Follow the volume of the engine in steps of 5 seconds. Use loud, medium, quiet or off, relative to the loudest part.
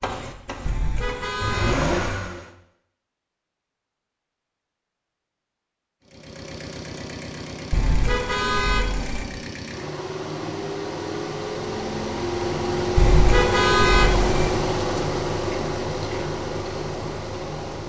loud, medium, loud, loud.